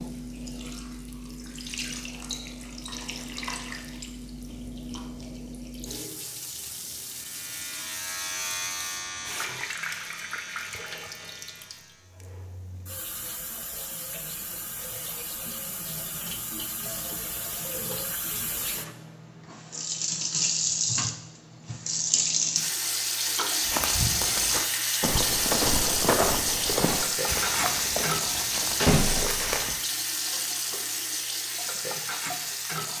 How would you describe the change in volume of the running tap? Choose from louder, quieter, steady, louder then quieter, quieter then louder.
louder.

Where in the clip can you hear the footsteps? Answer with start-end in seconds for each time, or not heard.
23.6-29.8.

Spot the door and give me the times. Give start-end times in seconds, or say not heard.
28.8-29.6.